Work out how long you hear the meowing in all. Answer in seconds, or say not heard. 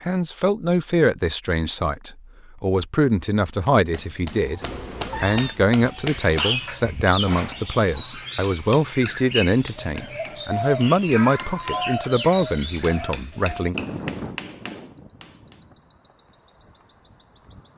2 s.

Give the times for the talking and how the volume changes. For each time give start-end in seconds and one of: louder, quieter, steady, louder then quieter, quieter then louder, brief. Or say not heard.
0.0-13.8 steady.